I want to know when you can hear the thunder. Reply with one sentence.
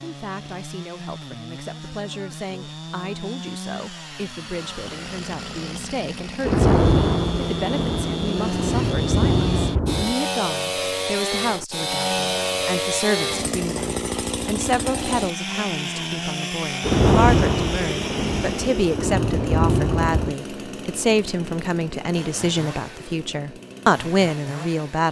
The thunder can be heard from 6.4 to 10.2 s and from 16.8 to 20.4 s.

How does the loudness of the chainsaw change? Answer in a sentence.
The volume of the chainsaw goes up, then down.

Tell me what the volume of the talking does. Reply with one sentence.
The loudness of the talking goes up.